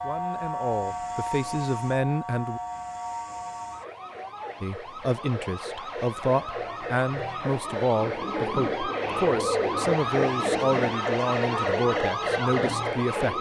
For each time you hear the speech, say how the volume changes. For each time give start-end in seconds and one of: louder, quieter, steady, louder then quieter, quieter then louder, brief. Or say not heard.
0.0-2.6 brief
4.6-13.3 steady.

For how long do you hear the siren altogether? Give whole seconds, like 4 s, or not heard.
13 s.